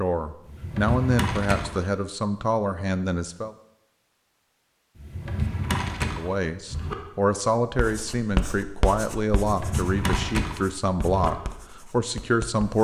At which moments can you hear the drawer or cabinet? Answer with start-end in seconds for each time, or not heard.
0.5-1.8, 5.0-7.0, 9.4-11.3.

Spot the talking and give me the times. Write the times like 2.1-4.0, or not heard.
0.0-3.5, 6.2-12.8.